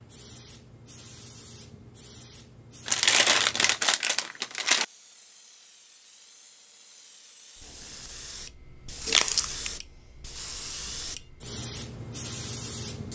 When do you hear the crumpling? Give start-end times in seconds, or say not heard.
2.9-4.8, 9.1-9.7.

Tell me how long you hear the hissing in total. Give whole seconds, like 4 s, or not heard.
13 s.